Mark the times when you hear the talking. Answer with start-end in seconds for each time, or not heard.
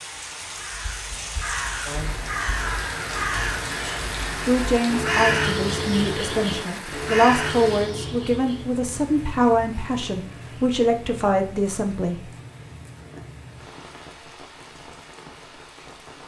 4.4-12.3.